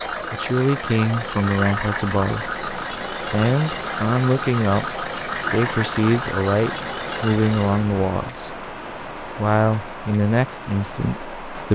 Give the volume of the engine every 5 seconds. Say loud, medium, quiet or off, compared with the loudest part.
loud, loud, off.